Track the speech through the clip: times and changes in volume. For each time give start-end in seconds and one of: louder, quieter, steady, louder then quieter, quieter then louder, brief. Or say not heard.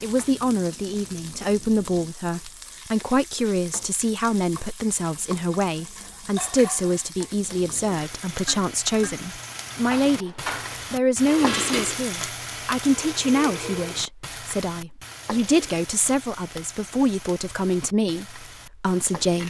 0.0-19.4 steady.